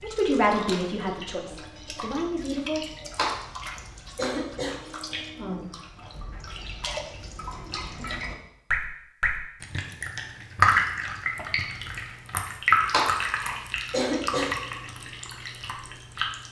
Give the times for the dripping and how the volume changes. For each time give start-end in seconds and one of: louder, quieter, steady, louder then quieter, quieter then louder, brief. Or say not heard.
0.0-16.4 louder then quieter.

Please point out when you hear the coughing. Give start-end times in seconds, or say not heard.
3.1-4.8, 12.9-14.6.